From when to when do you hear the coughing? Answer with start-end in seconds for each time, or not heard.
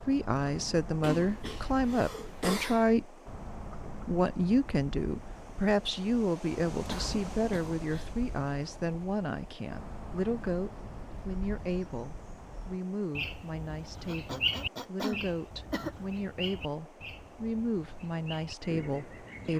1.0-2.9, 6.8-8.1, 14.1-15.9.